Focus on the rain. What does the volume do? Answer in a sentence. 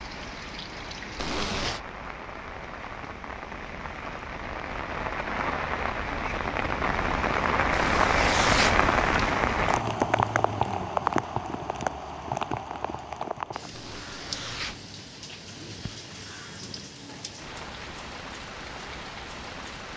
The loudness of the rain goes up, then down.